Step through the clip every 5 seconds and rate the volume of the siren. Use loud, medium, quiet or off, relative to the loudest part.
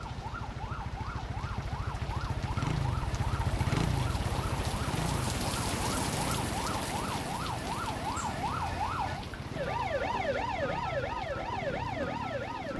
medium, loud, loud.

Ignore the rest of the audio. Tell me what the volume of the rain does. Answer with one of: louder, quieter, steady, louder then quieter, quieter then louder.
louder then quieter.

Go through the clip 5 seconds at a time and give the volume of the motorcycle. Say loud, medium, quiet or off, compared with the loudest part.
loud, medium, medium.